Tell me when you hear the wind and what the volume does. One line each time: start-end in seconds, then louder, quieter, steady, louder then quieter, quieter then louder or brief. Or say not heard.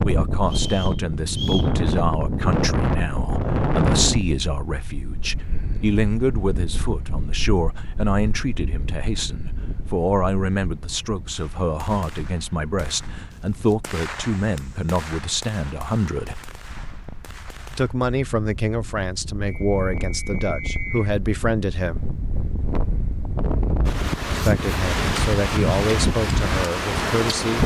0.0-27.6 quieter then louder.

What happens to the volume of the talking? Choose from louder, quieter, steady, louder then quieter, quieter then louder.
steady.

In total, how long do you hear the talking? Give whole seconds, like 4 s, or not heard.
24 s.